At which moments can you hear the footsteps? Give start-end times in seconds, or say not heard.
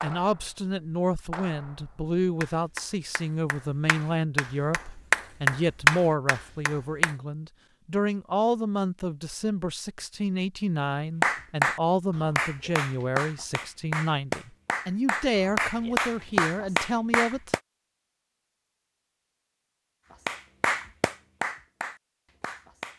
not heard.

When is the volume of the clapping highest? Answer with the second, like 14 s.
6 s.